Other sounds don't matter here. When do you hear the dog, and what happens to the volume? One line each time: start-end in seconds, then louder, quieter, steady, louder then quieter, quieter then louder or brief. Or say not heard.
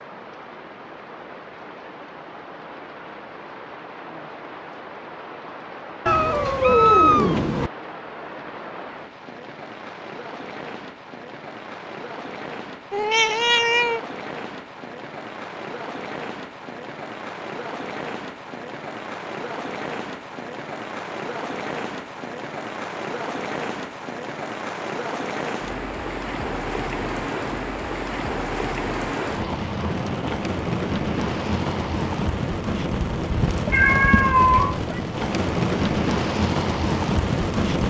not heard.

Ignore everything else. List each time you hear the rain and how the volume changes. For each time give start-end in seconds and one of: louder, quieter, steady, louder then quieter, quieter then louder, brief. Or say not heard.
0.0-37.8 louder.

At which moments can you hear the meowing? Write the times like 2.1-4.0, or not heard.
6.0-7.7, 12.9-14.0, 33.7-35.0.